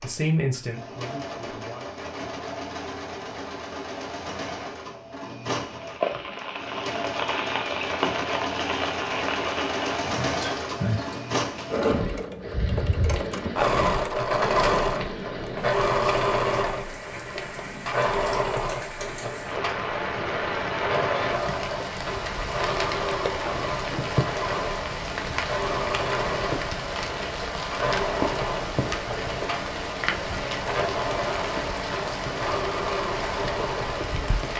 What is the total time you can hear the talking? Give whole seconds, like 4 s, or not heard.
2 s.